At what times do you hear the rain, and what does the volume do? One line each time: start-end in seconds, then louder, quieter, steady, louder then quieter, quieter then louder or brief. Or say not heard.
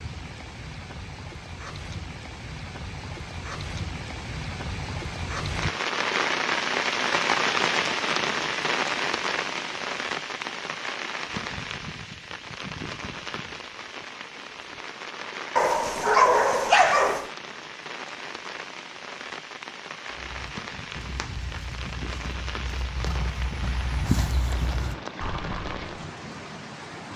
0.0-27.1 louder then quieter.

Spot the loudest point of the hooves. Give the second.
24 s.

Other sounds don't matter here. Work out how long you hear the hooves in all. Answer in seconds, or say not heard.
6 s.